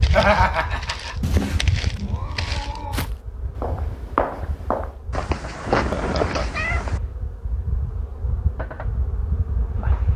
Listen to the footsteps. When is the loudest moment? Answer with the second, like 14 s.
4 s.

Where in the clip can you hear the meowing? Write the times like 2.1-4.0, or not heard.
1.2-3.1, 5.1-7.0.